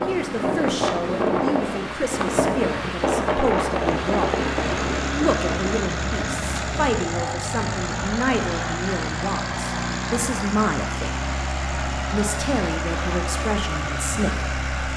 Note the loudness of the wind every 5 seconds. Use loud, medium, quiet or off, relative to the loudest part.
loud, medium, off.